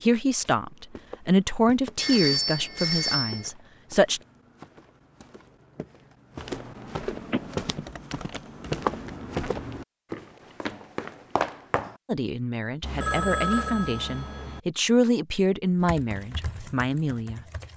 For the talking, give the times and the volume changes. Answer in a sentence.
You can hear the talking from 0.0 to 4.2 s, getting louder then quieter; and from 12.1 to 17.4 s, getting louder then quieter.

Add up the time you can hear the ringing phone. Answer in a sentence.
The ringing phone can be heard for 4 seconds in total.